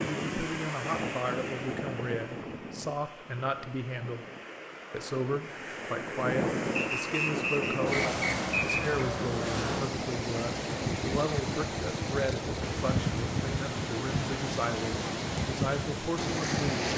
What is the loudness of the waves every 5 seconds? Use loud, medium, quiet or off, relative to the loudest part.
medium, loud, loud, loud.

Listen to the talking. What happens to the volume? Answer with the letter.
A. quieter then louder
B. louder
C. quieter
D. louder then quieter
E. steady
E.